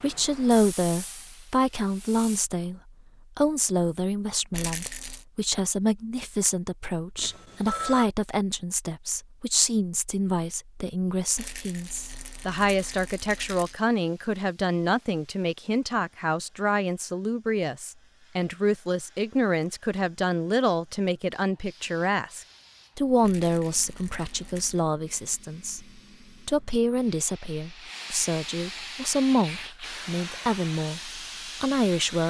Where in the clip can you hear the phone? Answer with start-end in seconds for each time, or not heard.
7.2-8.1.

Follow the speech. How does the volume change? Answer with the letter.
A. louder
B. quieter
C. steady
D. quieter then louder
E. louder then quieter
C.